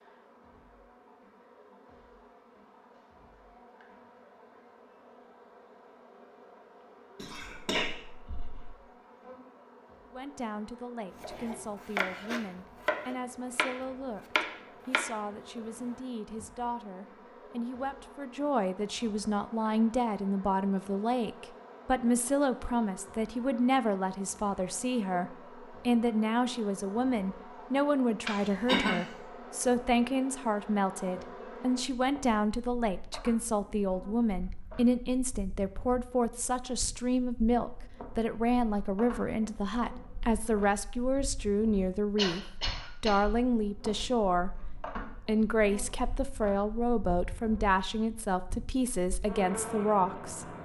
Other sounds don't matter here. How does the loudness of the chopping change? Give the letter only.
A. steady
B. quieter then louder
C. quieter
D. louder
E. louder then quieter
C.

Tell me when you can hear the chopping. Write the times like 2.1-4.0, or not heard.
11.2-16.4.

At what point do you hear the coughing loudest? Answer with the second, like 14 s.
29 s.